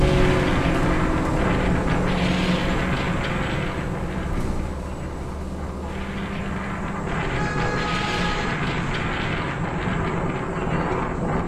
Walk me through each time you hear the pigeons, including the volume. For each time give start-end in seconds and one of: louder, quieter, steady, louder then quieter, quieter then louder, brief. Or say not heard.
not heard.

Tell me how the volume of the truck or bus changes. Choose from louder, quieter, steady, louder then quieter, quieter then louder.
quieter.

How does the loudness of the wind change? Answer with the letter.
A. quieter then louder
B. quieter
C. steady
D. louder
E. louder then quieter
A.